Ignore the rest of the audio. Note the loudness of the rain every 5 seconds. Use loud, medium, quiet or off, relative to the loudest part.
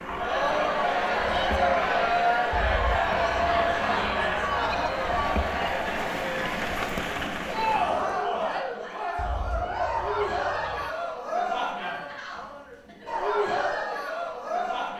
medium, loud, off.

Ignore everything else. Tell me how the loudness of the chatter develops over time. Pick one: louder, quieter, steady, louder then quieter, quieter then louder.
quieter.